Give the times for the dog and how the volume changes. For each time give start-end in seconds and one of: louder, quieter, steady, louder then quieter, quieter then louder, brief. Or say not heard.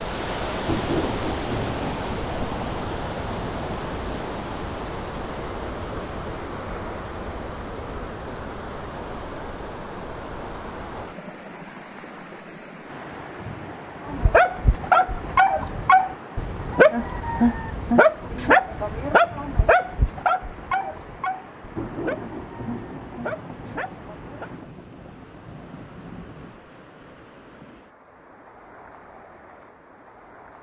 14.1-24.5 quieter.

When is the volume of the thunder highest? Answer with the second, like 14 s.
1 s.